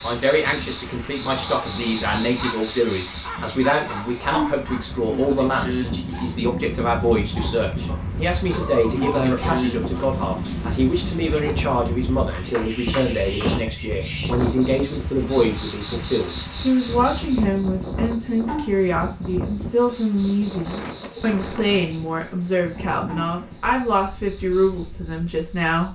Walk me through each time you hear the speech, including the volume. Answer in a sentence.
You can hear the speech from 0.0 to 25.9 s, at a steady volume.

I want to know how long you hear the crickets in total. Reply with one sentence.
The crickets can be heard for 26 seconds in total.